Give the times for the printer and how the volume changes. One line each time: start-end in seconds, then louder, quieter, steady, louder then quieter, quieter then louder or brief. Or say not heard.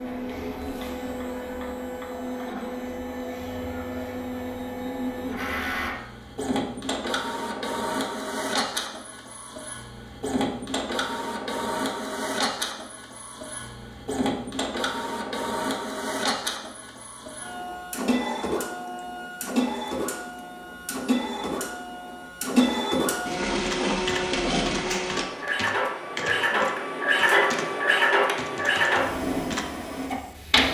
0.0-30.6 louder.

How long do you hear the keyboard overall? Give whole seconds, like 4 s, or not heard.
6 s.